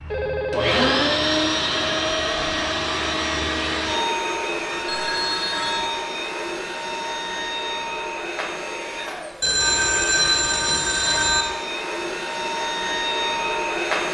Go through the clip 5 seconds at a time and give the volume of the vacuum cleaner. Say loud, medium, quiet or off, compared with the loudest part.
loud, medium, loud.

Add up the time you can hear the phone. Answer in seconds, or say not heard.
4 s.